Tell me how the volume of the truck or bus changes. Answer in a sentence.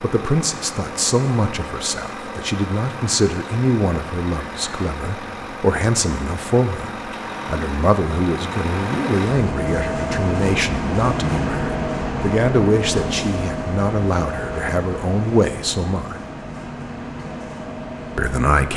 The volume of the truck or bus goes up, then down.